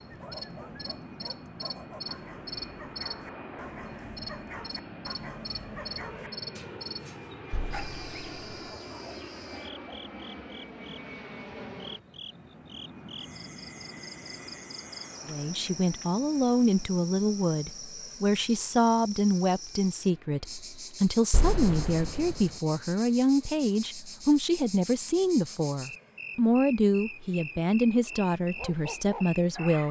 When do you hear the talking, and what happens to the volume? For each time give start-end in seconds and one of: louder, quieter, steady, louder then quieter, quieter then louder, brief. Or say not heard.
15.2-29.8 steady.